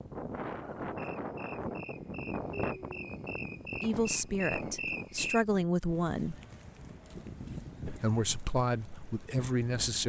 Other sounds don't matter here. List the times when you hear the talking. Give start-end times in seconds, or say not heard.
3.8-6.3, 7.8-10.0.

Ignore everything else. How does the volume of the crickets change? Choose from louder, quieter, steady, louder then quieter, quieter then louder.
louder.